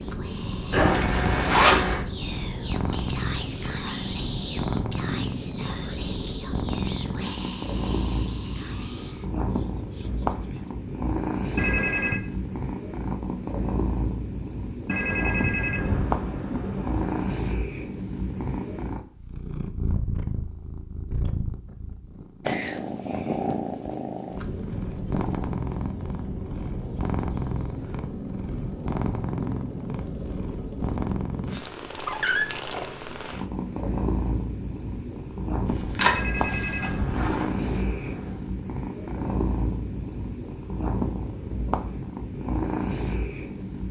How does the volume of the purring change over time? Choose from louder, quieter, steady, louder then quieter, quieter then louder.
steady.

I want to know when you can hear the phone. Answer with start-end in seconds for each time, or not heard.
11.6-12.2, 14.8-17.2, 36.0-38.5.